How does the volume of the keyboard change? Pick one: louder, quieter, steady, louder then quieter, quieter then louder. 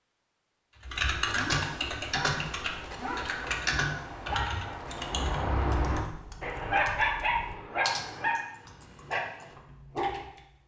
quieter.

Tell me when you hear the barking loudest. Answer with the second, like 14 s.
7 s.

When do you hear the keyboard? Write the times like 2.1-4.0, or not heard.
0.7-10.3.